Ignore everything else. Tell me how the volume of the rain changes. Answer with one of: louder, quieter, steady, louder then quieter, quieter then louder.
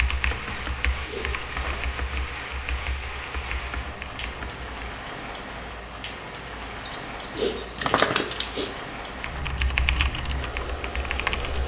steady.